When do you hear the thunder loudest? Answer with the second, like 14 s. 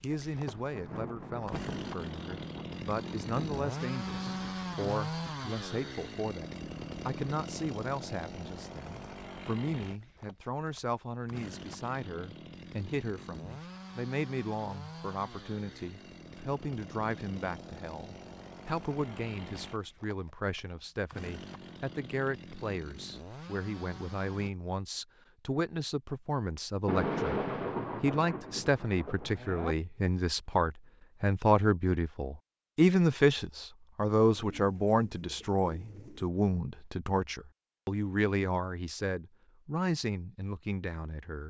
27 s.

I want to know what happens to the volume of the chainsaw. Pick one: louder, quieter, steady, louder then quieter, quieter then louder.
quieter.